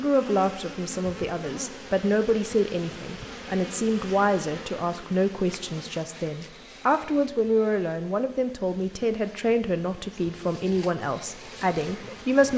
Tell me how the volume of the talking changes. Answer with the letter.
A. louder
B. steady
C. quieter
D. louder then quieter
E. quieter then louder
B.